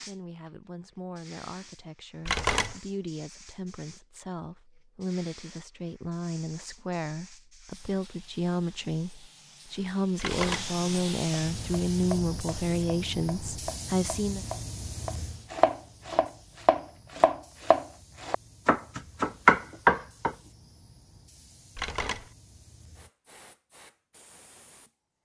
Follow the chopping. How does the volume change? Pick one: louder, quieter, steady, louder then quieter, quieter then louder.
louder.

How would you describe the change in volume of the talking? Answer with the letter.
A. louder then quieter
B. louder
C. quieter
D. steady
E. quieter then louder
B.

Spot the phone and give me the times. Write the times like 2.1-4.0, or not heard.
2.2-2.8, 10.2-10.7, 21.8-22.3.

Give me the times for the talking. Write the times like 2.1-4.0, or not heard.
0.0-14.4.